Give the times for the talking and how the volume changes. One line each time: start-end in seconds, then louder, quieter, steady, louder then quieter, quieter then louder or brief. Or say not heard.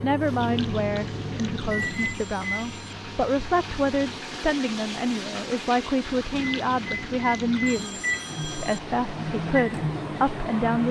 0.0-10.8 steady.